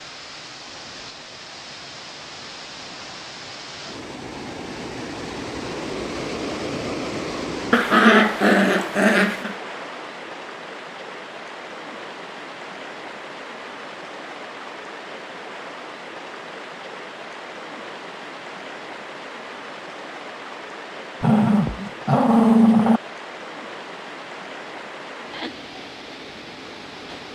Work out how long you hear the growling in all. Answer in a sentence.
You can hear the growling for 4 seconds altogether.